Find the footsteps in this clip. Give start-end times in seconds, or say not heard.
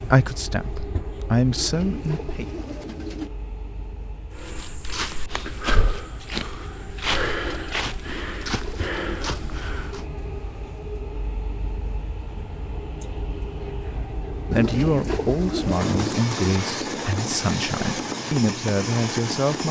4.3-10.1.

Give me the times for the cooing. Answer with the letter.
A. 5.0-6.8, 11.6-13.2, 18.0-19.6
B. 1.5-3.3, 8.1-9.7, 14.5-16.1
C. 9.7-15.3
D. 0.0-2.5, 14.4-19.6
B.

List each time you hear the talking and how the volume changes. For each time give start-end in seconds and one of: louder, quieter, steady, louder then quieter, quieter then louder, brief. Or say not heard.
0.0-2.5 brief
14.4-19.6 quieter then louder.